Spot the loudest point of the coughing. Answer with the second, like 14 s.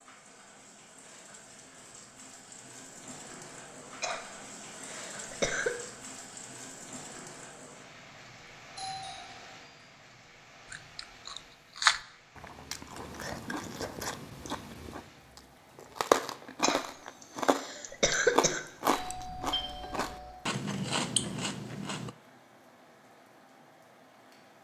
18 s.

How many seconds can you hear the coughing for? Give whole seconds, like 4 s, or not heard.
4 s.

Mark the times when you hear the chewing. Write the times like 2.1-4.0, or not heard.
10.7-22.1.